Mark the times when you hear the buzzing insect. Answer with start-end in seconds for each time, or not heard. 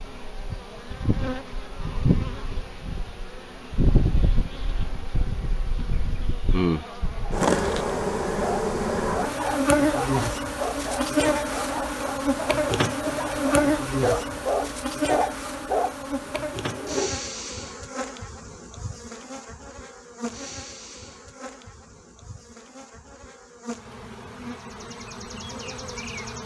0.0-26.4.